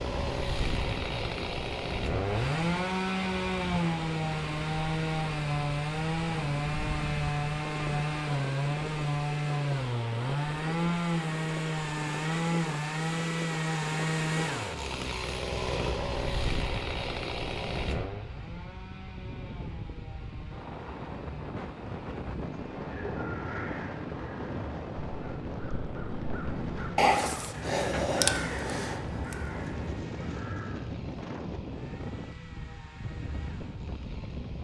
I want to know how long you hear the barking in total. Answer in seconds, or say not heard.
not heard.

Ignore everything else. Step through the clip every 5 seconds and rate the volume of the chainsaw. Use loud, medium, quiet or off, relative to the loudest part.
loud, loud, loud, medium, quiet, quiet, quiet.